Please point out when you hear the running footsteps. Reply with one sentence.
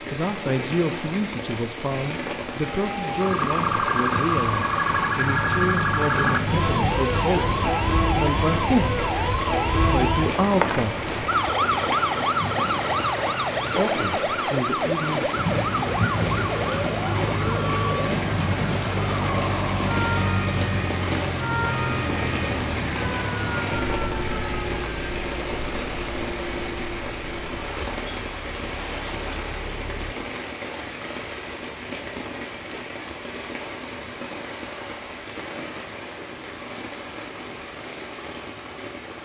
You can't hear the running footsteps here.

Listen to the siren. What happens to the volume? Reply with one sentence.
The loudness of the siren goes down.